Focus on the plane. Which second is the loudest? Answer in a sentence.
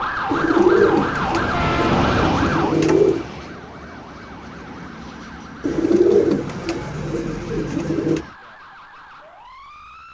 The volume of the plane peaks at 2 seconds.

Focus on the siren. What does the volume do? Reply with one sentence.
The loudness of the siren goes down.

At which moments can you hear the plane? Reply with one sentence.
You can hear the plane from 0.0 to 8.4 s.